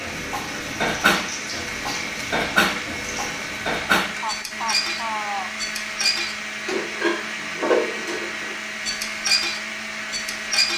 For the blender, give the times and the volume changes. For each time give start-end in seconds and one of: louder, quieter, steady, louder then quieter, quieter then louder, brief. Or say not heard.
0.0-10.7 steady.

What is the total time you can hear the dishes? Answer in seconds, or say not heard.
10 s.